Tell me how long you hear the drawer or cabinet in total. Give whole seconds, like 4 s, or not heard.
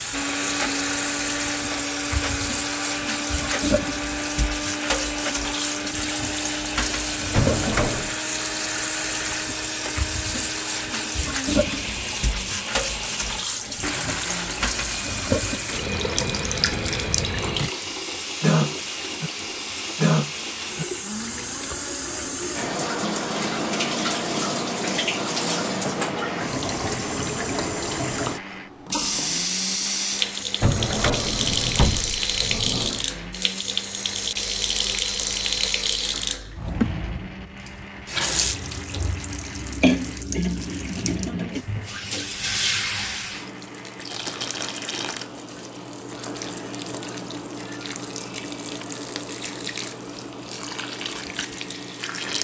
3 s.